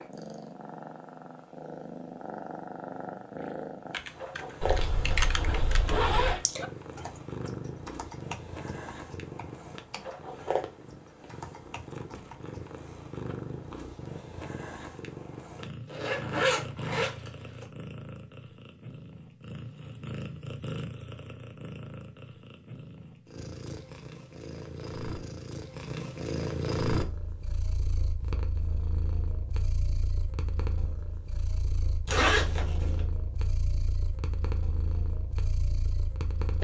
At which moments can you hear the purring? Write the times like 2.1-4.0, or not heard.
0.0-36.5.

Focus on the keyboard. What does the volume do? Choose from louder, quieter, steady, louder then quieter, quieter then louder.
quieter.